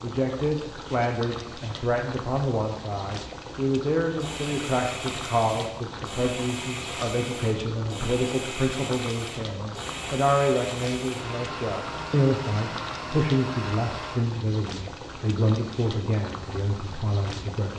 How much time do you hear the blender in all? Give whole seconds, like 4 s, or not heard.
10 s.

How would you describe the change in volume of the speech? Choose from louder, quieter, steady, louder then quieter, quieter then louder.
steady.